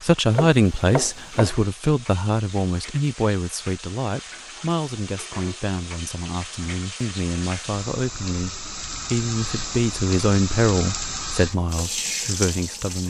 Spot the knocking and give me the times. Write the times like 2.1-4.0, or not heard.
0.3-1.5.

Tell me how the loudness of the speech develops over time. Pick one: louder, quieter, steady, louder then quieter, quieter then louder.
quieter then louder.